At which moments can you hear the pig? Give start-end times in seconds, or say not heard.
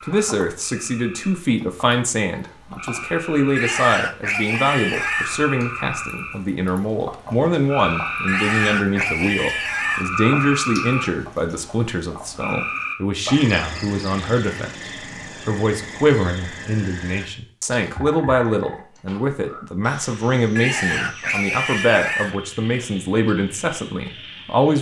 3.5-5.4, 8.2-10.1, 20.6-22.4.